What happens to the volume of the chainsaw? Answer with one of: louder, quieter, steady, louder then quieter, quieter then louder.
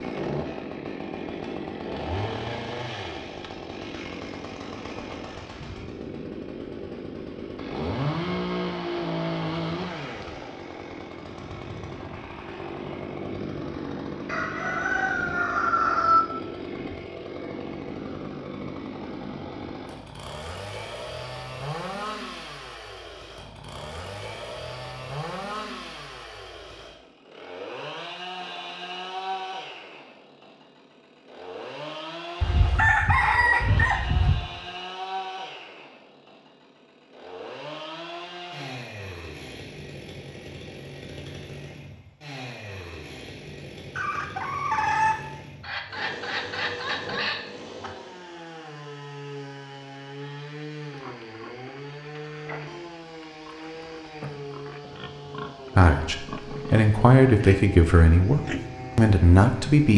quieter.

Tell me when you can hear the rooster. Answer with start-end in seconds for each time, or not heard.
14.2-16.2, 32.4-34.4, 44.0-47.9.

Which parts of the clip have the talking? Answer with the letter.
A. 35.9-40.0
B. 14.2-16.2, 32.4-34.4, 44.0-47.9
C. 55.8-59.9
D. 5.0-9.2
C.